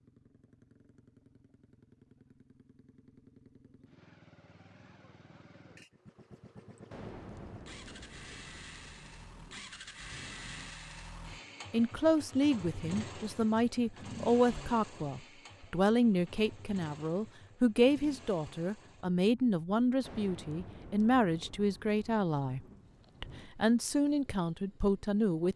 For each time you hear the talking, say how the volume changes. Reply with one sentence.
The talking can be heard from 11.7 to 25.5 s, at a steady volume.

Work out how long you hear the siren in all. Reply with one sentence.
The siren can't be heard in this clip.